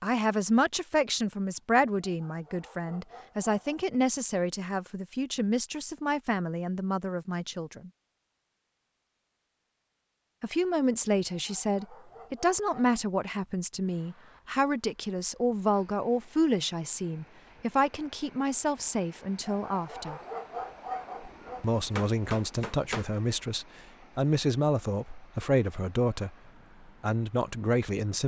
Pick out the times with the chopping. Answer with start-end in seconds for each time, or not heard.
21.9-23.1.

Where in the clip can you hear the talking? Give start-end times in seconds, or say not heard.
0.0-7.9, 10.4-20.2, 21.6-26.4, 27.0-28.2.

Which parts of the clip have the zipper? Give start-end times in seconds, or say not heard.
not heard.